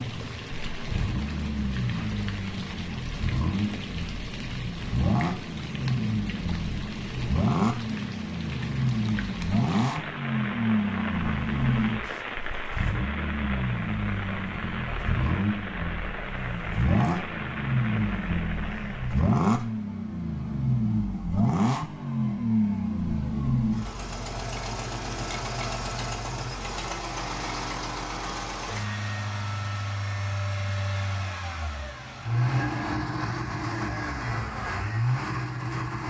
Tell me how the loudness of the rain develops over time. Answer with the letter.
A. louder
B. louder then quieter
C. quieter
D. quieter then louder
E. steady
E.